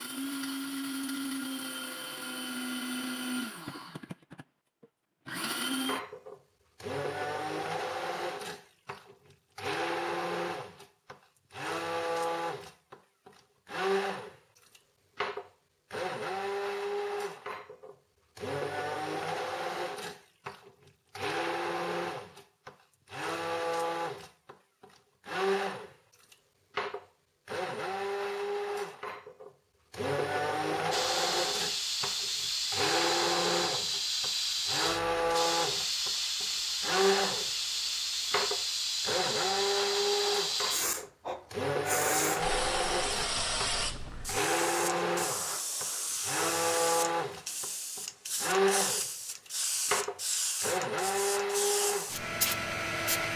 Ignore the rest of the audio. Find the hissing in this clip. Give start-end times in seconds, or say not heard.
30.9-53.3.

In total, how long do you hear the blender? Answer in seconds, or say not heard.
53 s.